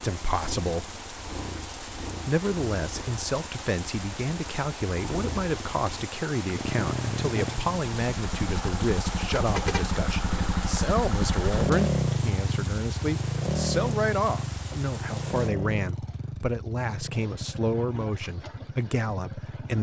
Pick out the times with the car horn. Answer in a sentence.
You can hear the car horn from 9.3 to 10.0 s.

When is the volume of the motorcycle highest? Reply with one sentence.
The loudest moment of the motorcycle is at 12 seconds.